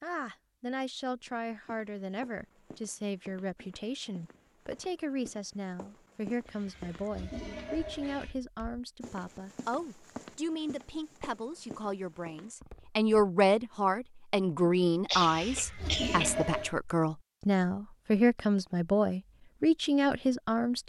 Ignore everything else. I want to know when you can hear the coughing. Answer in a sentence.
You can hear the coughing from 14.6 to 16.3 s.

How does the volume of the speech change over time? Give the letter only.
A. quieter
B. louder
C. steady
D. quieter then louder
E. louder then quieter
B.